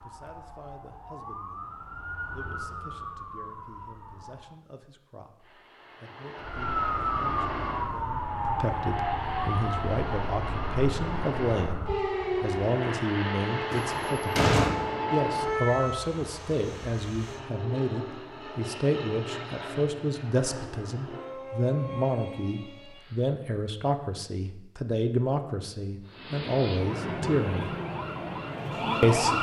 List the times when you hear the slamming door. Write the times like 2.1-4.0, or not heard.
13.7-14.8.